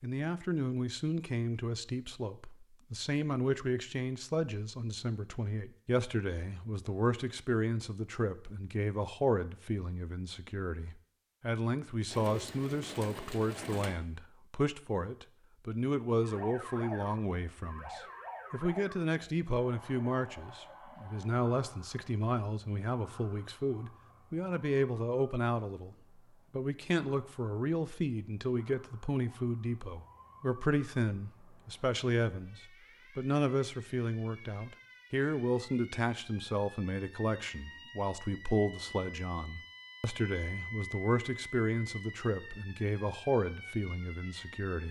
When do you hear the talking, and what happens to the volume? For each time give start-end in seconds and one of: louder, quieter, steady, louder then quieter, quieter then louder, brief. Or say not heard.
0.0-44.8 steady.